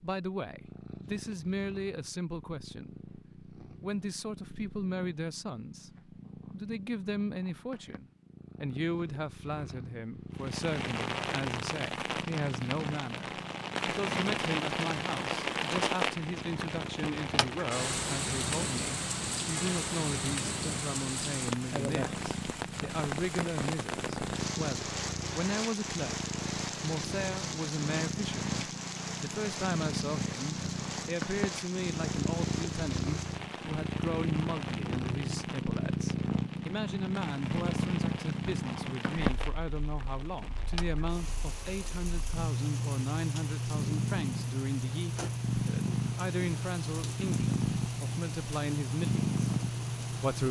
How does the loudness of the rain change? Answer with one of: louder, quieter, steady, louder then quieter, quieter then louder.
quieter.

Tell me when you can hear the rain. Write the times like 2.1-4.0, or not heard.
10.3-50.4.